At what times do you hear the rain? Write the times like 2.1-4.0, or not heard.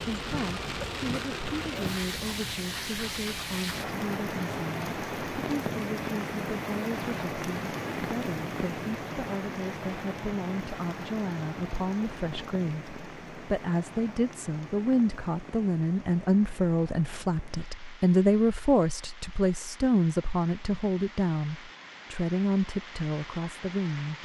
0.0-24.2.